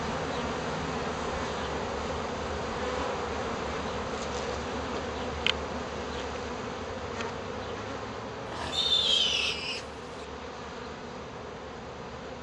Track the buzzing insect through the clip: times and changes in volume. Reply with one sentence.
You can hear the buzzing insect from 0.0 to 12.3 s, getting quieter.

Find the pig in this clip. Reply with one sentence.
The pig can be heard from 8.4 to 10.2 s.